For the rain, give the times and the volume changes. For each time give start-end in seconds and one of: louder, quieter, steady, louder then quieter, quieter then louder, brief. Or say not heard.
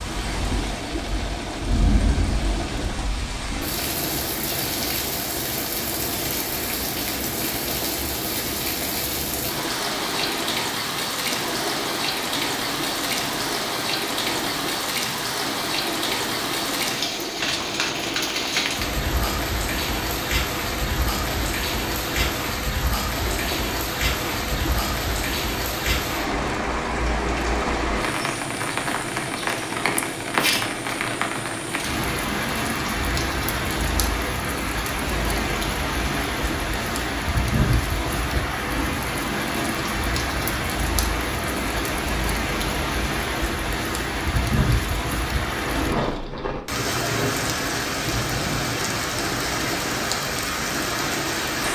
0.0-51.7 steady.